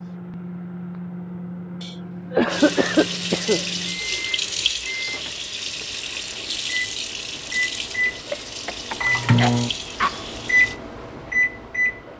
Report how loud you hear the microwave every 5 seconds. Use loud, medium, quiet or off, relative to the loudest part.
medium, loud, loud.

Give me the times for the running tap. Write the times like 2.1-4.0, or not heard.
2.5-10.8.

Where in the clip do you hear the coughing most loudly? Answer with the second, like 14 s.
3 s.